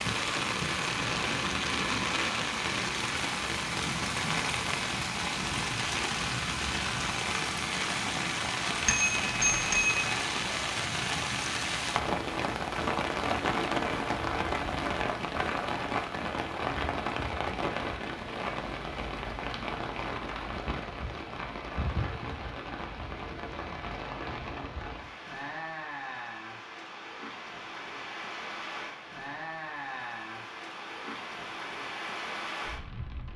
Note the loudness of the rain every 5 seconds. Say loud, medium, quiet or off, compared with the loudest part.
loud, loud, loud, loud, medium, medium, medium.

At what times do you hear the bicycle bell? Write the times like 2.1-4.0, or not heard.
8.8-10.0.